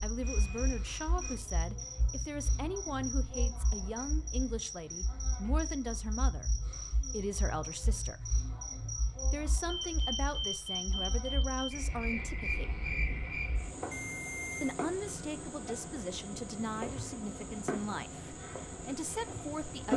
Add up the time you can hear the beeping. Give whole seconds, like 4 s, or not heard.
4 s.